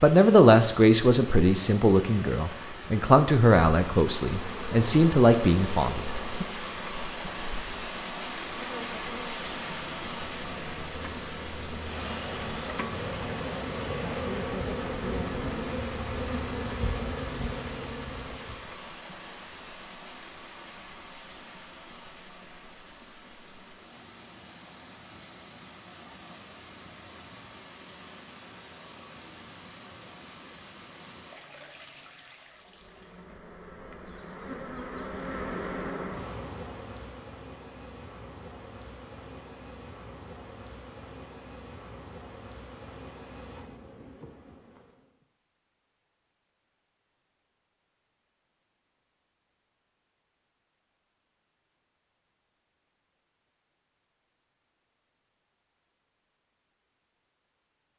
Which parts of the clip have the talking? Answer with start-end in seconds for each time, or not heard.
0.0-6.5.